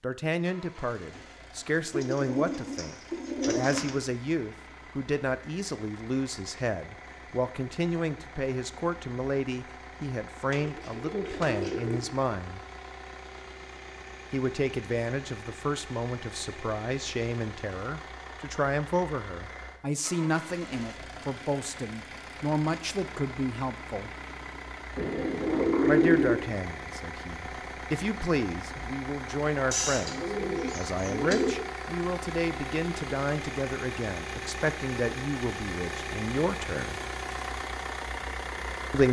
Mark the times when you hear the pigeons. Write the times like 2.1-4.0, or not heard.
1.9-4.0, 10.5-12.1, 24.9-26.4, 29.7-31.6.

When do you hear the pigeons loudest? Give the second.
26 s.